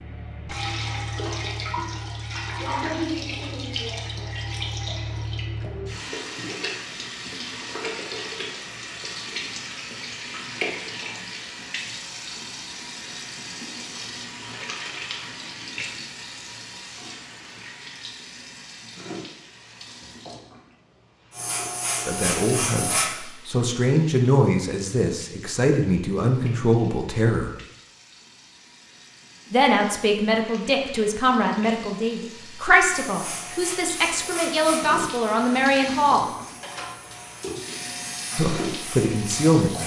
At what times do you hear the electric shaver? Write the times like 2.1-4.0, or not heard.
21.3-23.1, 32.9-39.8.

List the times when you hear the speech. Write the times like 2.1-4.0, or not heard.
22.1-27.5, 29.5-36.2, 38.4-39.8.